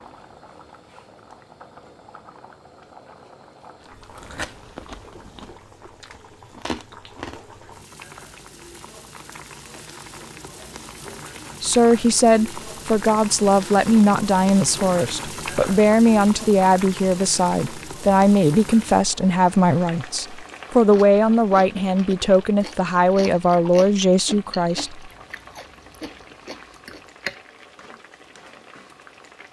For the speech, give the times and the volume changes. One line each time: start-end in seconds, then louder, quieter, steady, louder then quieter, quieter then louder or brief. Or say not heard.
11.6-25.1 steady.